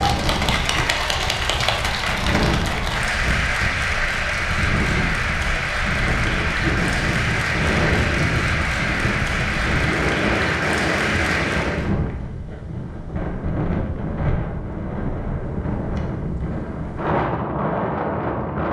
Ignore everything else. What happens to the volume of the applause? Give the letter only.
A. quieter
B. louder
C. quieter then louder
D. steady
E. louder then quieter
D.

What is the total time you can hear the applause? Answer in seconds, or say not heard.
12 s.